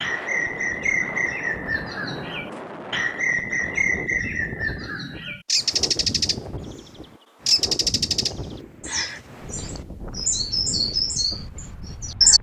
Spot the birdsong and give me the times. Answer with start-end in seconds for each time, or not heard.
0.0-6.4, 7.5-12.3.